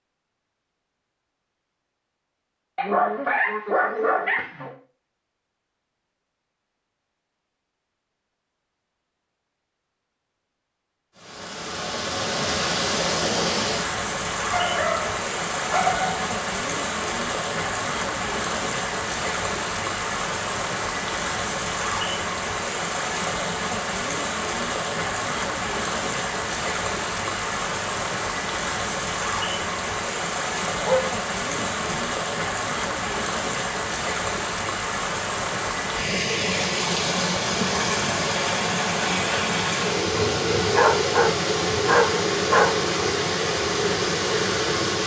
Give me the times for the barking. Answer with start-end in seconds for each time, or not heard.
2.8-4.8, 14.5-16.1, 30.8-31.9, 40.0-42.7.